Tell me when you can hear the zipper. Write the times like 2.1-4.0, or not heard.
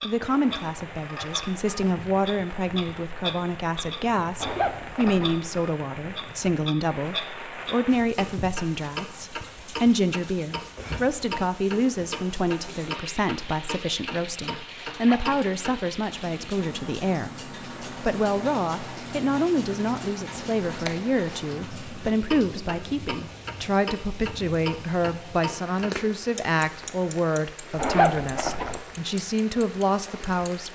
4.4-5.4, 14.9-15.3, 27.8-28.8.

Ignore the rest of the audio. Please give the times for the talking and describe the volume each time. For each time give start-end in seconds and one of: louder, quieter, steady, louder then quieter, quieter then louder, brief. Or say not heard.
0.0-30.7 steady.